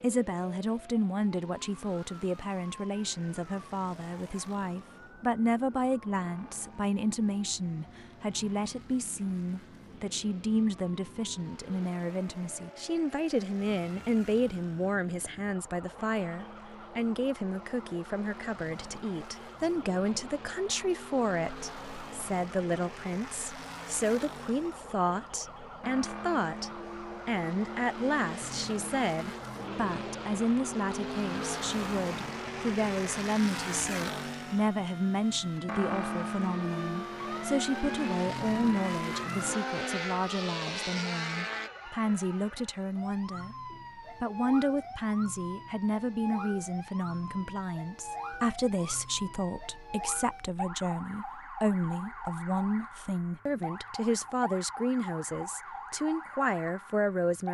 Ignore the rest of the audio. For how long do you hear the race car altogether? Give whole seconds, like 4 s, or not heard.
42 s.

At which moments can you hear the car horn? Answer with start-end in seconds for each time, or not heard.
not heard.